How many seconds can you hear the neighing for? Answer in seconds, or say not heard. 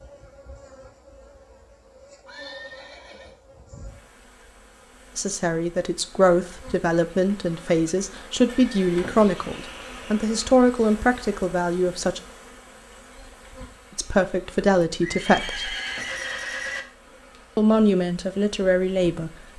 5 s.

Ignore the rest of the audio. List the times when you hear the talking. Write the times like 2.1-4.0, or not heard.
5.2-12.2, 13.9-15.8, 17.6-19.3.